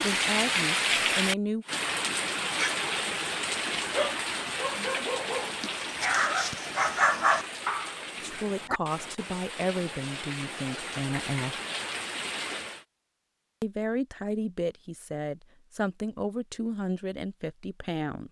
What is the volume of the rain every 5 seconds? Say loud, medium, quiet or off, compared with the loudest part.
loud, medium, medium, off.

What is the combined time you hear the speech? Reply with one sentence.
The speech can be heard for 10 seconds in total.